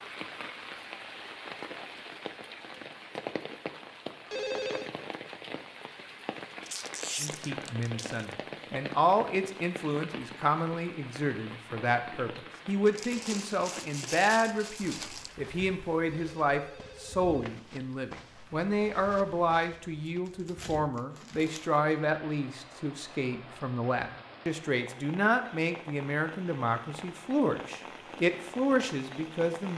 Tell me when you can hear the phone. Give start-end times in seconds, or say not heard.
4.3-4.9, 16.1-17.6.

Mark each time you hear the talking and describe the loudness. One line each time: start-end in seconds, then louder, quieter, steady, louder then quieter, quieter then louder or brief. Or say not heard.
7.2-29.7 steady.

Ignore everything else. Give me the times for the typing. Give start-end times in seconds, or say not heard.
not heard.